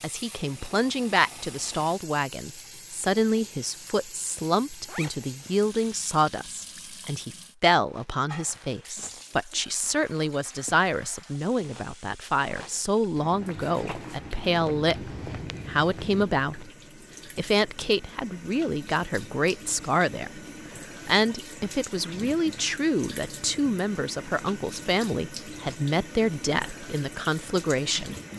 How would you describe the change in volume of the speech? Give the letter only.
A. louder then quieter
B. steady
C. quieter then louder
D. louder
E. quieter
B.